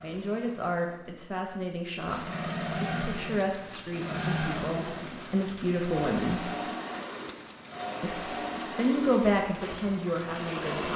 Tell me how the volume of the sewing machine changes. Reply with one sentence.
The loudness of the sewing machine goes up, then down.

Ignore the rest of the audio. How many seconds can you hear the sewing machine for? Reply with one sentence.
You can hear the sewing machine for 11 seconds altogether.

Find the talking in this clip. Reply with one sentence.
The talking can be heard from 0.0 to 6.5 s and from 8.0 to 10.9 s.